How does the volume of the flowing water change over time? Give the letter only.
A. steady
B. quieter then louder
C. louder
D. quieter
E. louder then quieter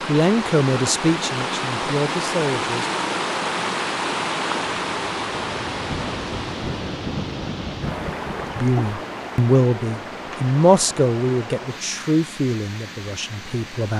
D.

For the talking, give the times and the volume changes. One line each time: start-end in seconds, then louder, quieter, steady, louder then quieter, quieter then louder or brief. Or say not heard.
0.0-2.9 brief
8.6-13.9 quieter.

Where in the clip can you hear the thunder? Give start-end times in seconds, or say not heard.
5.8-8.6.